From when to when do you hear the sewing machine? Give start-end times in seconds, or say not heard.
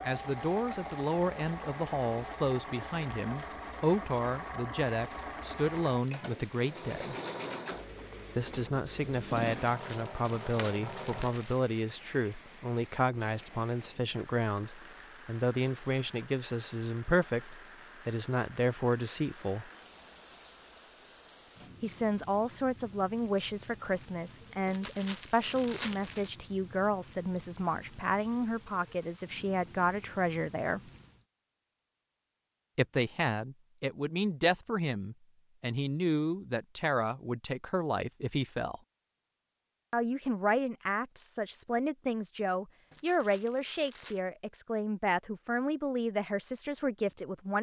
0.0-11.4.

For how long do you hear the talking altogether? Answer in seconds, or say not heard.
41 s.